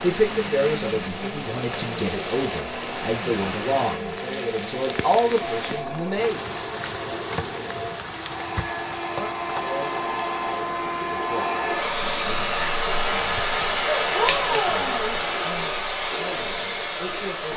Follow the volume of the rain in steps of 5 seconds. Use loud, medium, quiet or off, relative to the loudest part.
loud, loud, medium, off.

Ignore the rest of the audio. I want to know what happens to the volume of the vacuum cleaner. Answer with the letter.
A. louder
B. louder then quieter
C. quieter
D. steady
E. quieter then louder
A.